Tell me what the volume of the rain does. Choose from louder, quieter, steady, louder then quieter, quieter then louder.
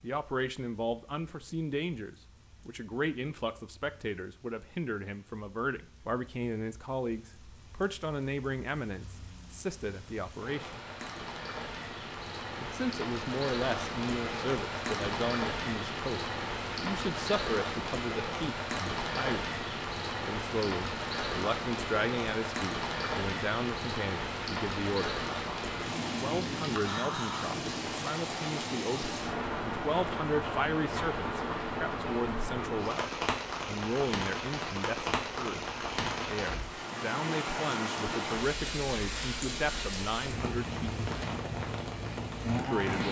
louder.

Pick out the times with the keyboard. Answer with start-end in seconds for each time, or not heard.
not heard.